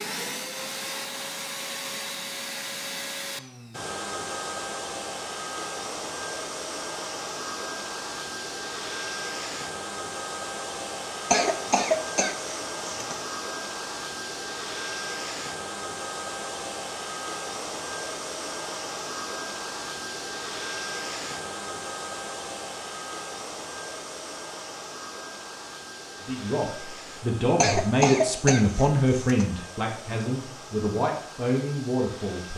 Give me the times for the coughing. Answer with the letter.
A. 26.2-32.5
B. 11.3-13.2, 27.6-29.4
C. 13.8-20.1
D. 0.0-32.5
B.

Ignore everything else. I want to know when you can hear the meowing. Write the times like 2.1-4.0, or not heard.
not heard.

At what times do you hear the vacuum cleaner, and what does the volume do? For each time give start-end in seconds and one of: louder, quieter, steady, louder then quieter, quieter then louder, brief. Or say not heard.
0.0-32.5 quieter.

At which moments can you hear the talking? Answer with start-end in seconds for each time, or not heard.
26.2-32.5.